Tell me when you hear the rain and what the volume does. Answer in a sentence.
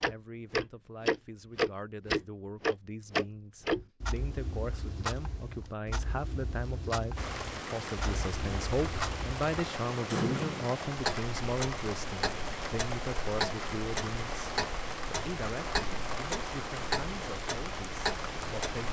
The rain can be heard from 7.2 to 18.8 s, at a steady volume.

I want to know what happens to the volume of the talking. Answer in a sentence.
The loudness of the talking goes up, then down.